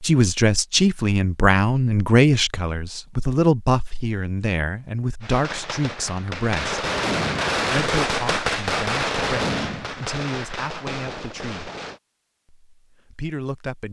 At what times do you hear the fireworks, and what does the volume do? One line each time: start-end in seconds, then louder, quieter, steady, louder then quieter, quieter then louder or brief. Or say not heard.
5.2-12.0 louder then quieter.